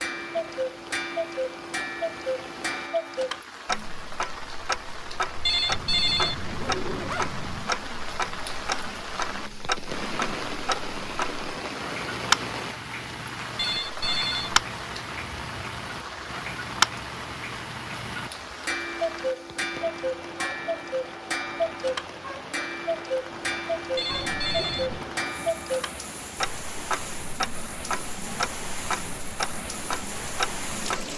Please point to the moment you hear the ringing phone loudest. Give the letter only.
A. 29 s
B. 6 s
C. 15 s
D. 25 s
B.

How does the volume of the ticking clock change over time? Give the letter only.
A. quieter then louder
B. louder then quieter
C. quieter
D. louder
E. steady
E.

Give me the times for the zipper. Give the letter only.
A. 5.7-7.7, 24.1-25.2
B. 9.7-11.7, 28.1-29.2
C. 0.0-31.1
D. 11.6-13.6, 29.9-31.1
A.